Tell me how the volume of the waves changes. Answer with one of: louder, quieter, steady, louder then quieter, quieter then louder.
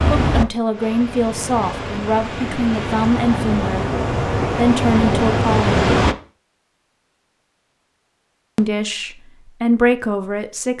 louder.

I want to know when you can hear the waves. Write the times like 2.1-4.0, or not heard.
0.0-6.2.